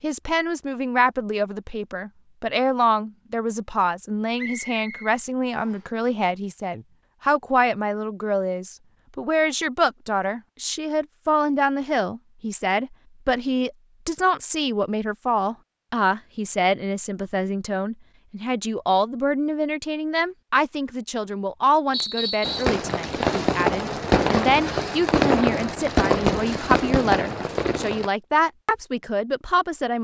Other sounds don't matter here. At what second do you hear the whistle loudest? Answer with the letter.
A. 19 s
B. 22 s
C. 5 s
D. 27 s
B.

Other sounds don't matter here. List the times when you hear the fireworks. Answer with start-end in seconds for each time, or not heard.
22.0-28.1.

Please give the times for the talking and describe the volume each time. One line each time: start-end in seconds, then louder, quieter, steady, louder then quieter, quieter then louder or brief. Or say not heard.
0.0-29.9 steady.